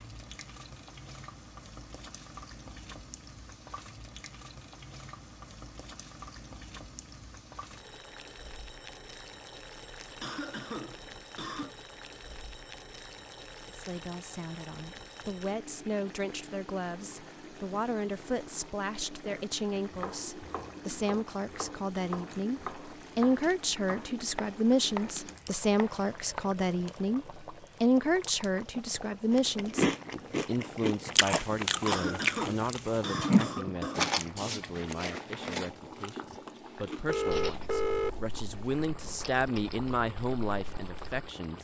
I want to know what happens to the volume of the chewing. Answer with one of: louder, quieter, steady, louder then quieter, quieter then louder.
quieter.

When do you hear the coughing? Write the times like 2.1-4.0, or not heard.
10.2-11.8, 31.9-34.1.